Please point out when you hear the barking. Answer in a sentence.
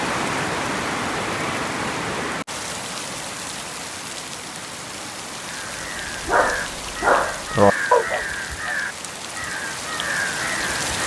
You can hear the barking from 6.2 to 8.8 s.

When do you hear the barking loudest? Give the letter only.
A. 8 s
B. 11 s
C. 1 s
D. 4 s
A.